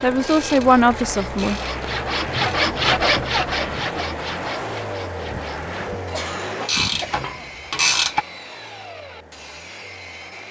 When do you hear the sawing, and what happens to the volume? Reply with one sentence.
You can hear the sawing from 0.0 to 10.4 s, getting louder then quieter.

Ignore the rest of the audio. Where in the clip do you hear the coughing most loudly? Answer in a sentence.
The volume of the coughing peaks at 7 seconds.